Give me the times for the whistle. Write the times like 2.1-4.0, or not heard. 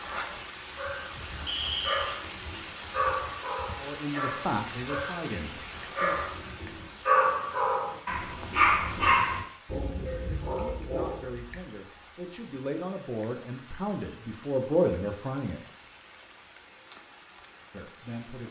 1.4-2.1.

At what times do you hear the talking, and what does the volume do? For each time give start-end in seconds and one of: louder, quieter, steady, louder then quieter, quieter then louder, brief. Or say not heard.
3.8-6.2 brief
10.5-15.6 louder
17.7-18.4 brief.